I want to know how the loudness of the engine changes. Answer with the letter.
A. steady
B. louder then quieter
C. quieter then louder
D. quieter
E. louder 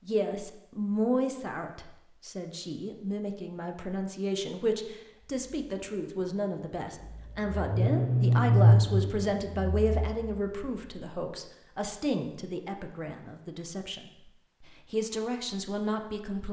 B.